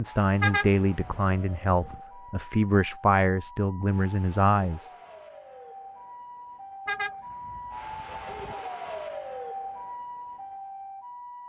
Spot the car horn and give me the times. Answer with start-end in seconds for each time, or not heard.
0.4-2.0, 6.8-8.6.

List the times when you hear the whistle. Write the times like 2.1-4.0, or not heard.
not heard.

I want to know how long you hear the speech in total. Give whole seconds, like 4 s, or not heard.
5 s.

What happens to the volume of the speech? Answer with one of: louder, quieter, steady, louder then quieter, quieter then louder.
steady.